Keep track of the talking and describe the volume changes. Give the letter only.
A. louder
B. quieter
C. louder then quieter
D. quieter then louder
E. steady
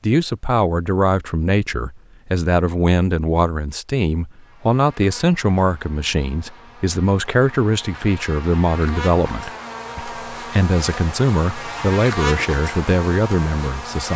E.